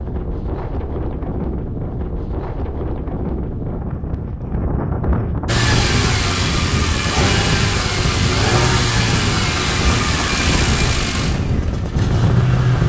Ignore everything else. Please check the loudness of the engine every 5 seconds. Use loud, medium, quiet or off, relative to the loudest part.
off, loud, loud.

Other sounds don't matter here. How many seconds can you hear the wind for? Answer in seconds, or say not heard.
13 s.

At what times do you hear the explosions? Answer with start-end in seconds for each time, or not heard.
not heard.